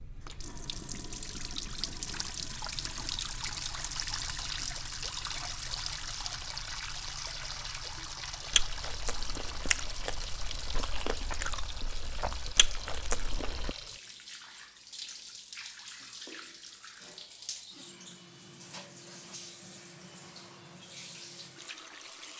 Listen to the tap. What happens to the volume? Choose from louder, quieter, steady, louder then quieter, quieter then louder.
quieter.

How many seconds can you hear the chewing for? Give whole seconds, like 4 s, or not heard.
5 s.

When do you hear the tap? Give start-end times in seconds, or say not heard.
0.0-22.3.